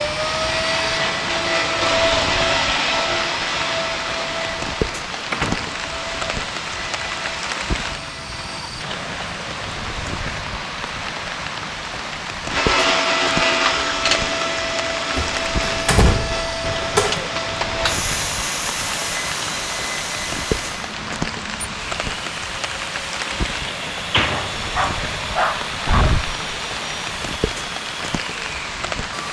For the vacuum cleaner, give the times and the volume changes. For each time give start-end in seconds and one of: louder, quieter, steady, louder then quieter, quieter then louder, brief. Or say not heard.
0.0-8.7 quieter
12.4-29.2 quieter.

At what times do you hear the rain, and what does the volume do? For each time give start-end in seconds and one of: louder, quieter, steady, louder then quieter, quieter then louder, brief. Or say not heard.
0.0-29.2 steady.